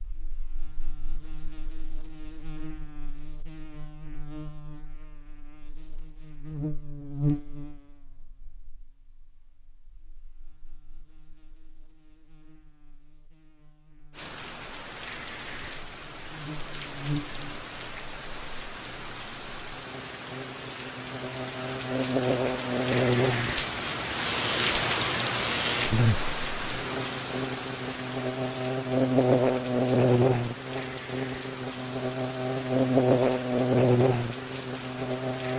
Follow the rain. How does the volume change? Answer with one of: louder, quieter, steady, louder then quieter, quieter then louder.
louder then quieter.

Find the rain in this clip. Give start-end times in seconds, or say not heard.
14.1-35.5.